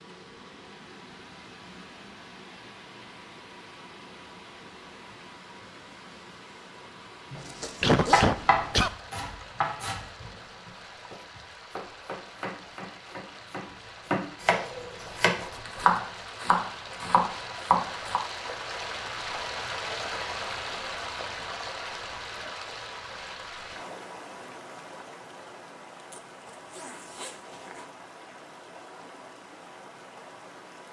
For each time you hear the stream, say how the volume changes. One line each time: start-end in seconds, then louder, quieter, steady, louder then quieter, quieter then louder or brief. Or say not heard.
0.0-30.8 louder then quieter.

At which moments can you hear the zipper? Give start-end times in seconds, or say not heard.
7.3-8.2, 15.1-16.0, 25.9-27.9.